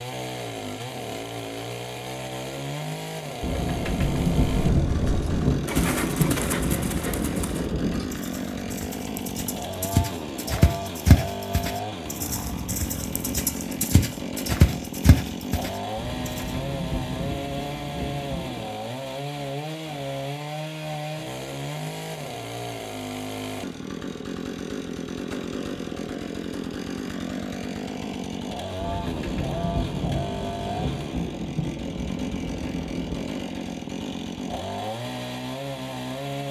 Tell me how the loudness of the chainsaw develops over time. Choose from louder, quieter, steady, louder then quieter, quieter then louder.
steady.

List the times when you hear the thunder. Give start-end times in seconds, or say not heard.
3.4-8.2, 15.9-18.7, 28.8-33.4.